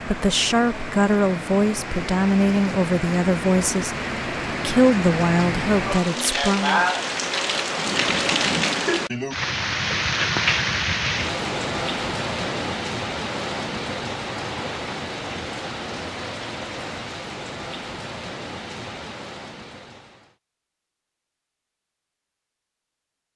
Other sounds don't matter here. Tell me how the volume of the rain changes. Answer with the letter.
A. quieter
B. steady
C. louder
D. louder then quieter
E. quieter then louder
D.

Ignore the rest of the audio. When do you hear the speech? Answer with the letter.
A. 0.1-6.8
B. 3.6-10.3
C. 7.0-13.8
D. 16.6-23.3
A.